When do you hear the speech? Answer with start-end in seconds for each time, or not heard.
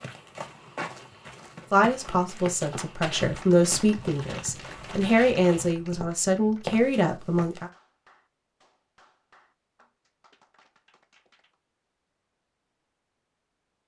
1.7-7.7.